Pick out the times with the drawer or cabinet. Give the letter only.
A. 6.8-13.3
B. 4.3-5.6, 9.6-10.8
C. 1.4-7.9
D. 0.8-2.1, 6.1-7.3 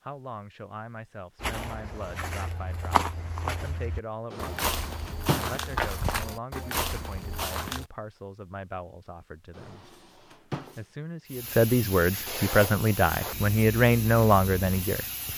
B.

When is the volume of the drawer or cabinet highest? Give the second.
5 s.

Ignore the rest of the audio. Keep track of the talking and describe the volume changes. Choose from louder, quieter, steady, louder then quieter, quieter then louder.
louder.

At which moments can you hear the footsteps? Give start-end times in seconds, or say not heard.
1.4-7.9.